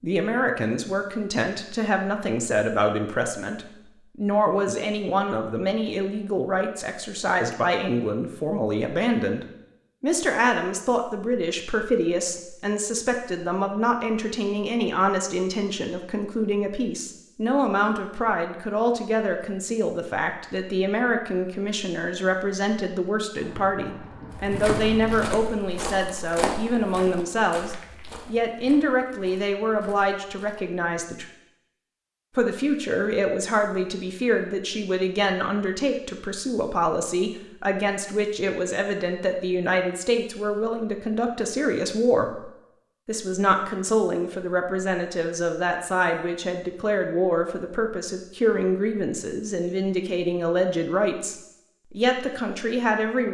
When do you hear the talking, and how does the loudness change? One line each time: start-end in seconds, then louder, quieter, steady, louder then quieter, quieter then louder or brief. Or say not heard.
0.0-31.2 steady
32.4-42.5 steady
43.0-53.3 steady.